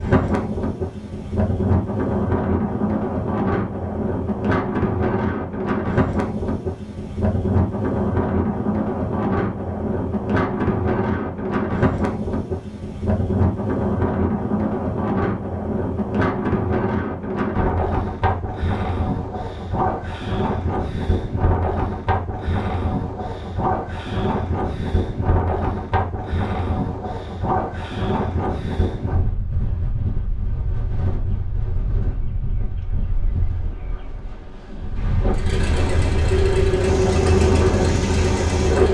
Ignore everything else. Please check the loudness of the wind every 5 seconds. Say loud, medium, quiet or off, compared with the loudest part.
loud, loud, loud, loud, loud, loud, medium, loud.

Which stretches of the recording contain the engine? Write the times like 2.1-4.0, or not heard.
35.3-38.8.